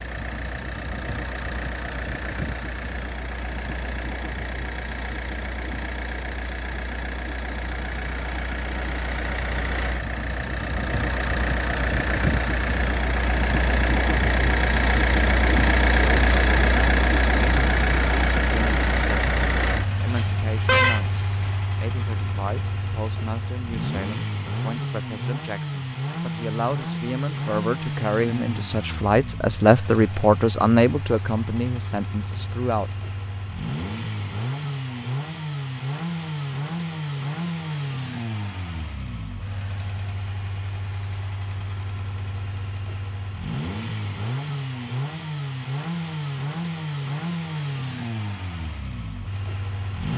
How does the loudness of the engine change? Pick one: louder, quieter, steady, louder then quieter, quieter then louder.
louder then quieter.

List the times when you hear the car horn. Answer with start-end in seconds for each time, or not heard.
20.1-21.5.